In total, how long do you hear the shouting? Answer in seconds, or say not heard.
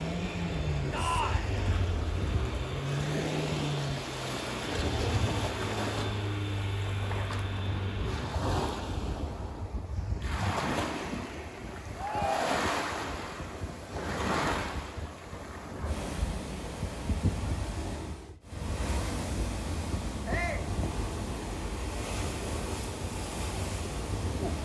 2 s.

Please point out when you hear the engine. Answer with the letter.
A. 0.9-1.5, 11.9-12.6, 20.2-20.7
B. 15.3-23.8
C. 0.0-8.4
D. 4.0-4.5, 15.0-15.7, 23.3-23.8
C.